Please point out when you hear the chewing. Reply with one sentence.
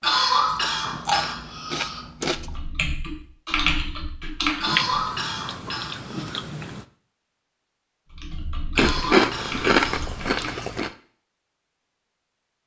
The chewing can be heard from 0.5 to 2.5 s, from 4.7 to 6.8 s and from 8.8 to 10.9 s.